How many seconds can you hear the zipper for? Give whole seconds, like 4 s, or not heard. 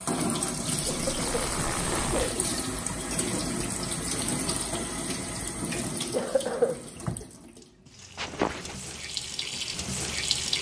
2 s.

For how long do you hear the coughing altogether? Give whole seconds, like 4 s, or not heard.
3 s.